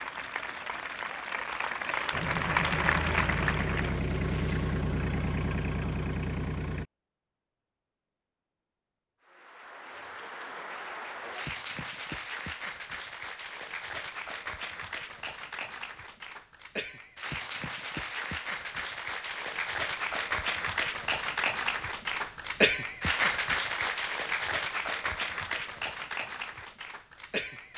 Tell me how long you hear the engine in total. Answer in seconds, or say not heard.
5 s.